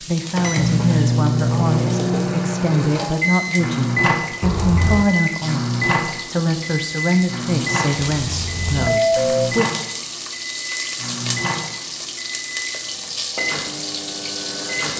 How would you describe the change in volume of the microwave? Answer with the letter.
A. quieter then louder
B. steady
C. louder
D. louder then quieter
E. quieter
E.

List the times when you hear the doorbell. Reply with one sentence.
The doorbell can be heard from 4.4 to 5.0 s and from 8.0 to 9.5 s.